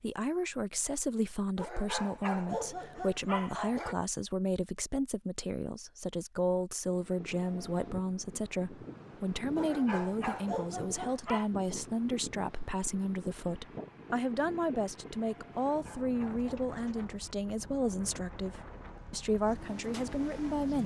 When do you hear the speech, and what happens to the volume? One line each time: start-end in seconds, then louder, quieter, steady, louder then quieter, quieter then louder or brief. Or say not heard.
0.0-20.8 steady.